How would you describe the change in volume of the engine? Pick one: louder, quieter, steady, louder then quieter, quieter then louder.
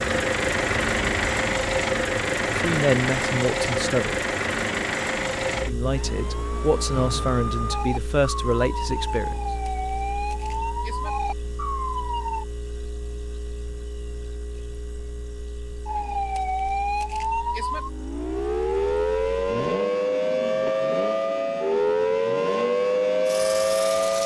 quieter then louder.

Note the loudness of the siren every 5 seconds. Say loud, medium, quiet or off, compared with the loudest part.
quiet, medium, medium, loud, loud.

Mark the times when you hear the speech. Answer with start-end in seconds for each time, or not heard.
2.5-4.2, 5.7-9.4.